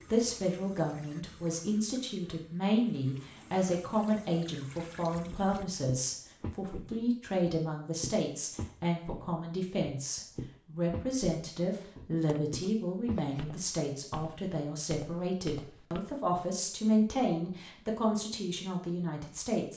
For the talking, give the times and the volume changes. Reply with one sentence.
You can hear the talking from 0.1 to 19.7 s, at a steady volume.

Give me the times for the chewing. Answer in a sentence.
You can't hear the chewing here.